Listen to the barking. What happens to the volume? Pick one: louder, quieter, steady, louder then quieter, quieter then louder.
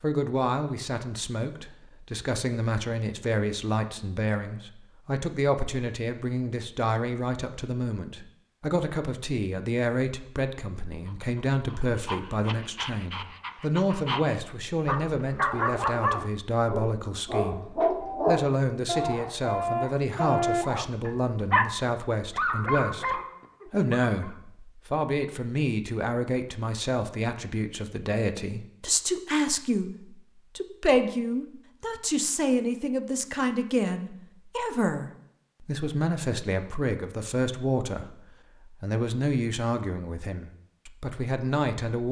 louder.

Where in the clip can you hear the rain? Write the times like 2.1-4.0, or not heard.
not heard.